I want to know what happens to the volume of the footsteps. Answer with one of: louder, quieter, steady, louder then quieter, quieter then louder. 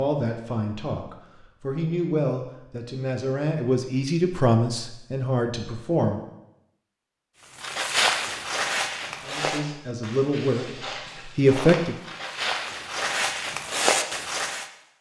quieter then louder.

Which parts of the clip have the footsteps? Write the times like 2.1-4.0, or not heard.
7.5-14.7.